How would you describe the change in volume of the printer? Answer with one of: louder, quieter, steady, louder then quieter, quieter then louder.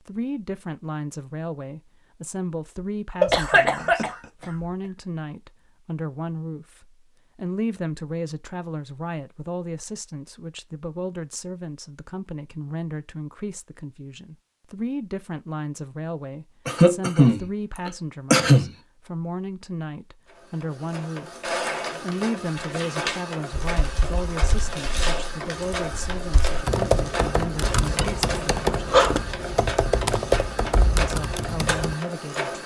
steady.